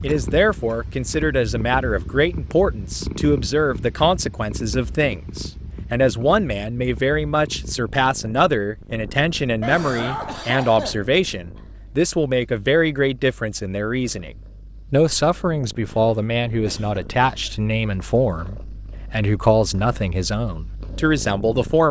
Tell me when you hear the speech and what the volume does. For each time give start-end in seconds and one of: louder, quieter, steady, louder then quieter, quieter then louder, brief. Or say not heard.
0.0-14.3 steady
14.9-21.8 steady.